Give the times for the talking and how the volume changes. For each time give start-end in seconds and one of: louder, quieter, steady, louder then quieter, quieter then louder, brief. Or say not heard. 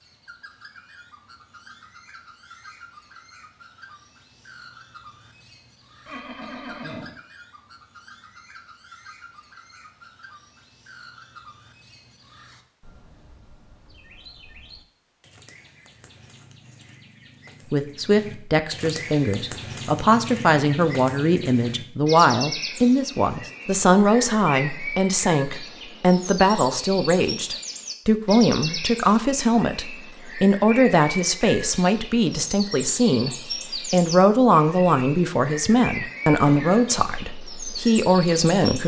17.7-38.8 steady.